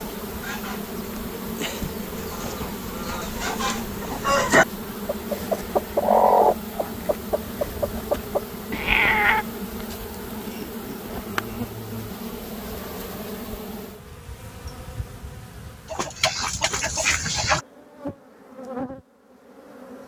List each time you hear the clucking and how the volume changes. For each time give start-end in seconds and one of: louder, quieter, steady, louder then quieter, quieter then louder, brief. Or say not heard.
0.0-8.4 louder then quieter
15.8-17.6 brief.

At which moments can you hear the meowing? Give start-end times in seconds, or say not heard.
8.7-9.4.